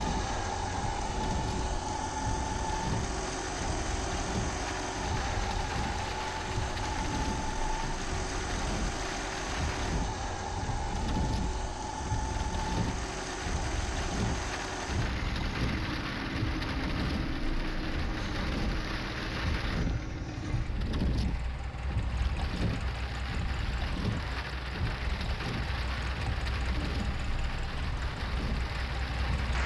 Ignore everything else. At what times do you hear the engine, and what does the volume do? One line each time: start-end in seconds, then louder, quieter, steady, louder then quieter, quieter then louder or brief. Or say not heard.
0.0-29.6 quieter.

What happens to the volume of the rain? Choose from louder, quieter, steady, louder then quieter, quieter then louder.
steady.